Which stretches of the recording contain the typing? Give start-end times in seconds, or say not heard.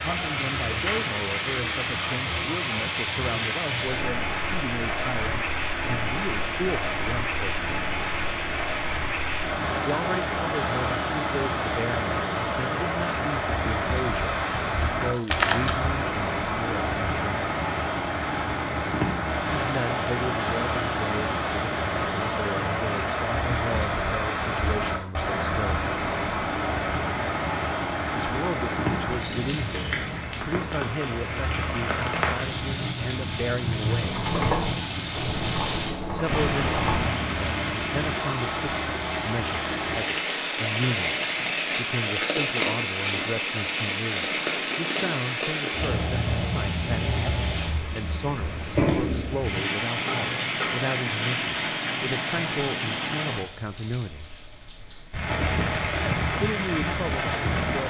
34.0-37.0.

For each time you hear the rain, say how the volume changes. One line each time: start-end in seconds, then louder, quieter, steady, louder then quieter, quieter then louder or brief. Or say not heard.
0.0-57.8 steady.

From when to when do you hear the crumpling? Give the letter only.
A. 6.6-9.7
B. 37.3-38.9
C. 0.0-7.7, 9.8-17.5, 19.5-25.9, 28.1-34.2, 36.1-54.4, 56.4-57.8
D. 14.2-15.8
D.